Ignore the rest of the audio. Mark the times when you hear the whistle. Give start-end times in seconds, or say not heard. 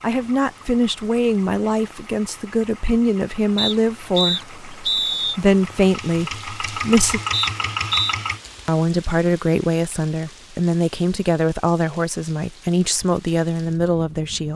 3.5-5.4, 7.3-8.2.